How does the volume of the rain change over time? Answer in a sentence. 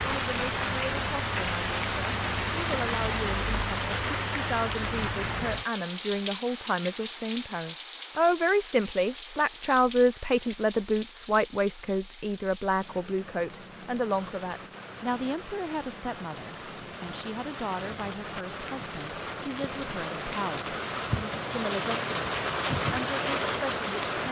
The loudness of the rain goes down, then up.